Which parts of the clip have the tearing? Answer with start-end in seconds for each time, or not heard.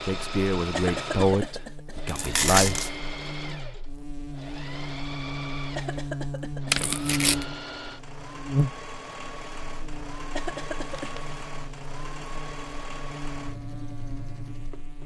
2.0-2.9, 6.7-7.5, 10.8-11.4.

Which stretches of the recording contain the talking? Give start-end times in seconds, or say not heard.
0.0-2.9.